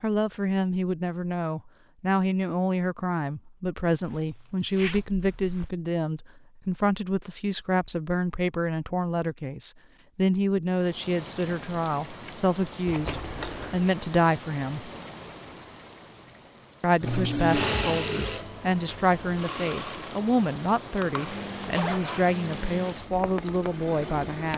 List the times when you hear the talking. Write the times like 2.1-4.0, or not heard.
0.0-14.9, 16.8-24.5.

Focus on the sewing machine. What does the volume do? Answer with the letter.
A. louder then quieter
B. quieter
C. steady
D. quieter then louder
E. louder
B.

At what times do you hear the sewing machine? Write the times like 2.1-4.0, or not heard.
17.0-24.5.